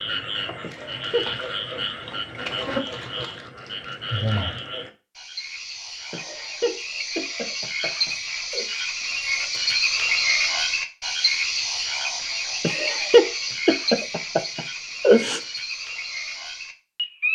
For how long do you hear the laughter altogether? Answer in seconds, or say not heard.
6 s.